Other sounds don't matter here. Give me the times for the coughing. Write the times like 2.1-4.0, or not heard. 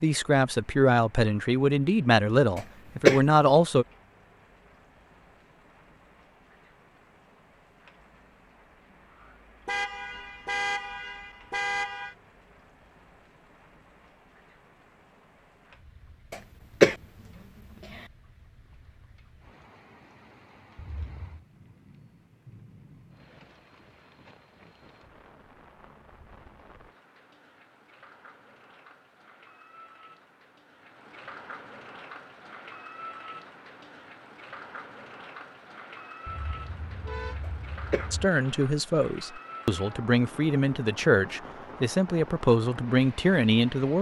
2.5-3.2, 16.3-16.9, 37.4-38.0.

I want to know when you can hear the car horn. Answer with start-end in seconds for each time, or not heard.
9.7-12.2, 20.8-21.4, 36.2-38.3.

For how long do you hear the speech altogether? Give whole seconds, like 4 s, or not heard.
10 s.